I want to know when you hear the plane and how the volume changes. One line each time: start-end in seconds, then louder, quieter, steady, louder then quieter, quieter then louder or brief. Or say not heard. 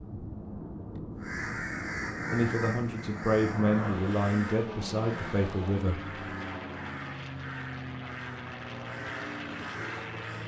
0.0-10.4 steady.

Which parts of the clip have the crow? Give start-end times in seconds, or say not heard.
1.1-10.4.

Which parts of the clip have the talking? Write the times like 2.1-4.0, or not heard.
2.3-6.0.